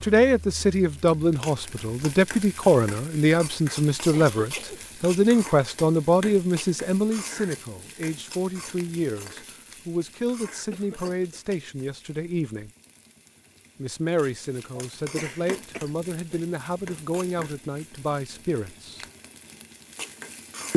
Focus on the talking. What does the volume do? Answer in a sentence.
The loudness of the talking goes down.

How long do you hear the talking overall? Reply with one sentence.
The talking can be heard for 18 seconds in total.